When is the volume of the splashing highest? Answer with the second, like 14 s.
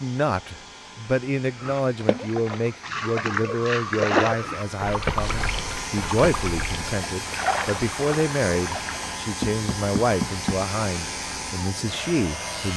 4 s.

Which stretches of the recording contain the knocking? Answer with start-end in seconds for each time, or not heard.
9.4-10.7.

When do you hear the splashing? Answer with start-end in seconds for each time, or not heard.
1.6-9.2.